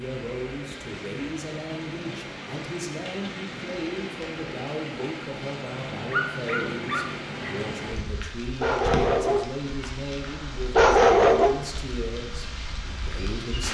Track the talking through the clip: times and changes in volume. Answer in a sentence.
You can hear the talking from 0.0 to 13.6 s, at a steady volume.